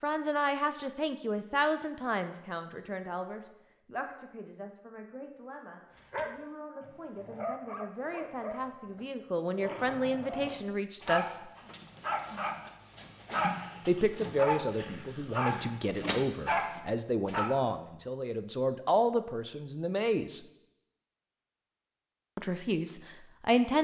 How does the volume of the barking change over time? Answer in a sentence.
The volume of the barking goes up.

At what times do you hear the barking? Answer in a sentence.
The barking can be heard from 6.0 to 17.5 s.